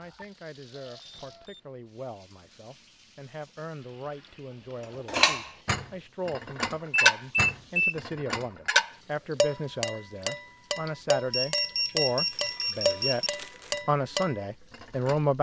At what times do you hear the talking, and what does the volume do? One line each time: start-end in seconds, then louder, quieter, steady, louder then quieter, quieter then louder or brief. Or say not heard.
0.0-15.3 louder.